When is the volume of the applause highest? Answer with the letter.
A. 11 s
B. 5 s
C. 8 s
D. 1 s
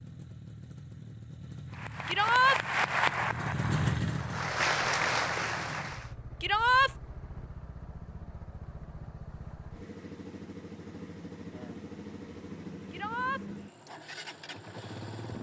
B.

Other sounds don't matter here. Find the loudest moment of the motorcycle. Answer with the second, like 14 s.
4 s.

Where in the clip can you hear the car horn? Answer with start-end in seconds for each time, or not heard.
not heard.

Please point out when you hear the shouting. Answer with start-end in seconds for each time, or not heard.
2.0-2.6, 6.4-6.9, 12.9-13.4.